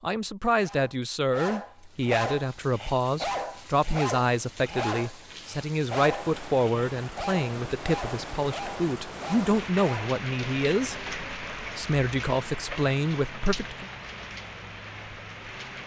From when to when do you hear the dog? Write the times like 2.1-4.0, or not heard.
0.6-10.2.